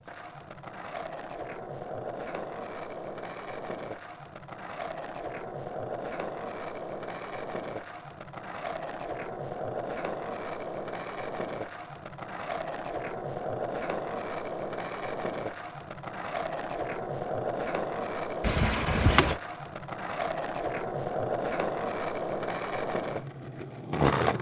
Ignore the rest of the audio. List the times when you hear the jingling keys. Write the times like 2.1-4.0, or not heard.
18.4-19.4.